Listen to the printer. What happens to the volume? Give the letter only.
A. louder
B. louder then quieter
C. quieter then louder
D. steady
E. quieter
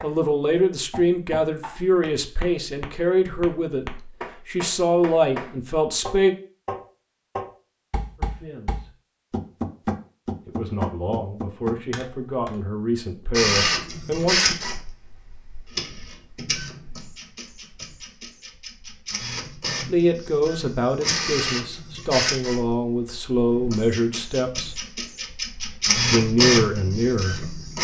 C.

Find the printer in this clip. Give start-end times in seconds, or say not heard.
13.3-27.7.